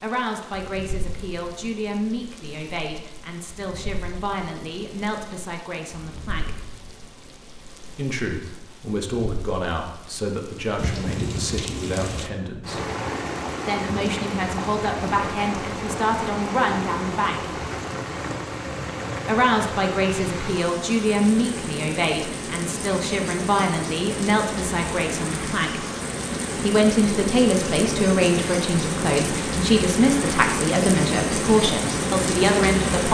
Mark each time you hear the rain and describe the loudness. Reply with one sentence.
You can hear the rain from 0.0 to 33.0 s, getting louder.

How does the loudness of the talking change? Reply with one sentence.
The volume of the talking goes up.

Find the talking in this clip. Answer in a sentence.
You can hear the talking from 0.0 to 6.5 s, from 7.9 to 12.8 s, from 13.7 to 17.6 s, from 19.2 to 25.8 s and from 26.6 to 33.0 s.